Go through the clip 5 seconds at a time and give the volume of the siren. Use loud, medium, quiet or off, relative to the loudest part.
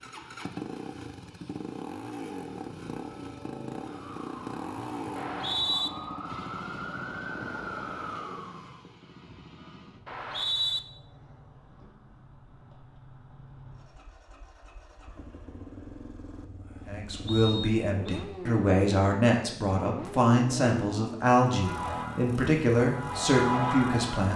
quiet, medium, off, off, loud.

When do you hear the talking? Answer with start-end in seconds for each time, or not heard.
16.9-24.3.